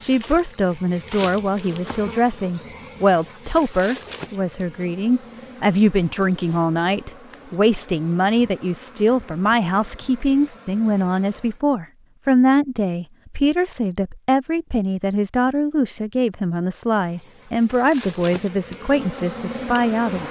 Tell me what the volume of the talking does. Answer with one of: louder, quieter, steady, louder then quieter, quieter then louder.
steady.